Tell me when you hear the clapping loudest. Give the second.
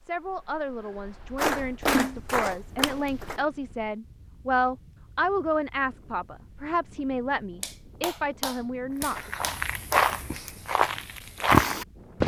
2 s.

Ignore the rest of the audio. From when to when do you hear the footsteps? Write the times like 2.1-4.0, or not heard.
9.1-12.2.